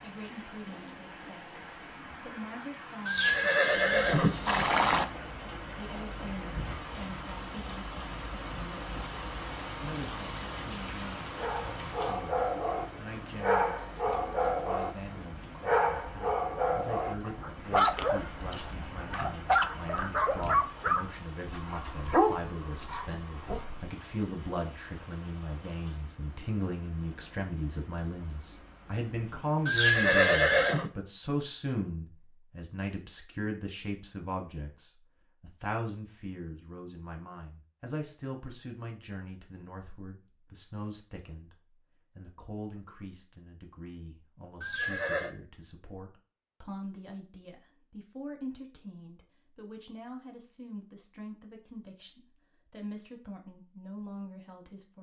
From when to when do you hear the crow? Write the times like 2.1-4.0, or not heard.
not heard.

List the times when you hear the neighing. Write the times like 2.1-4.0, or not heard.
3.0-5.0, 29.6-30.9, 44.6-45.3.